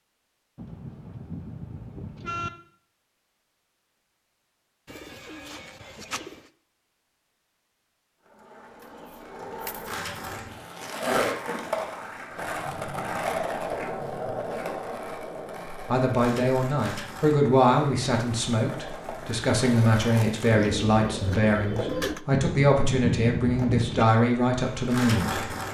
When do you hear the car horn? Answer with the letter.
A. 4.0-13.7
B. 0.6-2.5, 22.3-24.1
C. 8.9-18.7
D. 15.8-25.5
B.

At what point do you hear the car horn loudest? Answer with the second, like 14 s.
23 s.